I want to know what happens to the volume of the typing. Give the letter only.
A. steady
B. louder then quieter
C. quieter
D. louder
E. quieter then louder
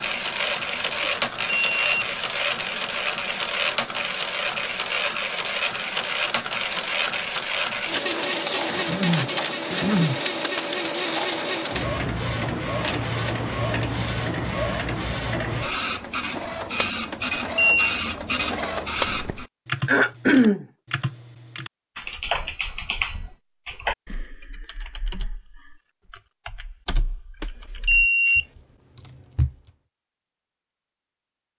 C.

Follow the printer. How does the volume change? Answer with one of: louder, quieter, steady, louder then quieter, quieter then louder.
steady.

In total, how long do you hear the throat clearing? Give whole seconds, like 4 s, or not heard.
2 s.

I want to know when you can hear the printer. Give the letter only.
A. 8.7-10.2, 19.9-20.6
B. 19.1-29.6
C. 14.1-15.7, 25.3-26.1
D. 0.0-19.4
D.